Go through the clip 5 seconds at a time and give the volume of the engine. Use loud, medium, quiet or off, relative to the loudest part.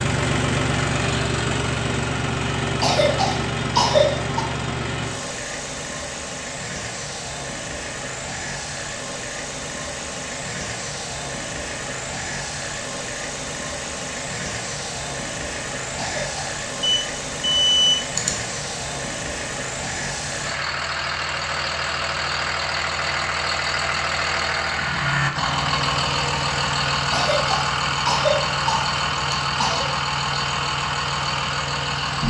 loud, medium, medium, medium, loud, loud, loud.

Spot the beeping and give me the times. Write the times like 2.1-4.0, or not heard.
16.8-18.4.